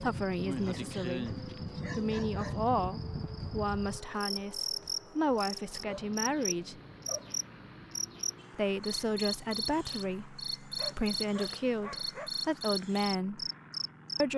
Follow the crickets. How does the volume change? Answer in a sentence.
The loudness of the crickets stays about the same.